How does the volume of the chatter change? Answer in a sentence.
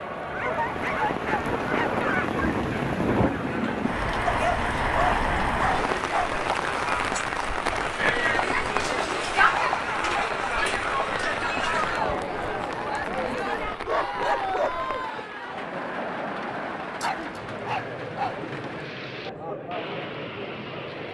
The volume of the chatter goes up, then down.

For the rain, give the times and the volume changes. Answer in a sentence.
The rain can be heard from 0.0 to 21.0 s, getting quieter.